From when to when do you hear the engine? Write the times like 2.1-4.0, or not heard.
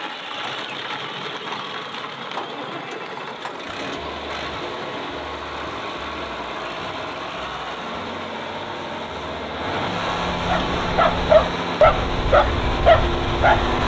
0.0-13.8.